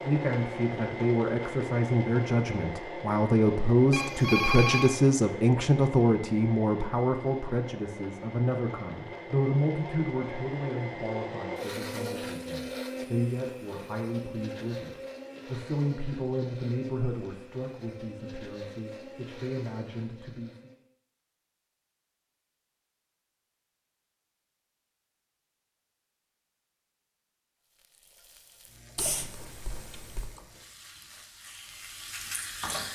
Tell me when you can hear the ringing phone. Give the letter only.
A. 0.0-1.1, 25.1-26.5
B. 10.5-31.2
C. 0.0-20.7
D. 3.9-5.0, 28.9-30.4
D.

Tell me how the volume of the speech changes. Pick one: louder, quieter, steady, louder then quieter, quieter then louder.
quieter.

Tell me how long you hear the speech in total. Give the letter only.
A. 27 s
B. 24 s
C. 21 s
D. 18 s
C.